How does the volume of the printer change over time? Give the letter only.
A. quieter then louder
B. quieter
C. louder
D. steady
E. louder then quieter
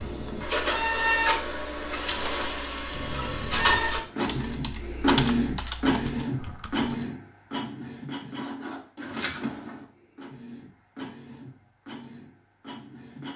B.